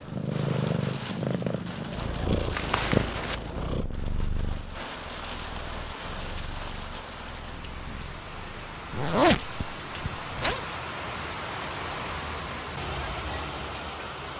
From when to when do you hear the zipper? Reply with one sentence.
You can hear the zipper from 2.5 to 3.4 s and from 8.9 to 10.7 s.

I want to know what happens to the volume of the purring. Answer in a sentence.
The volume of the purring goes down.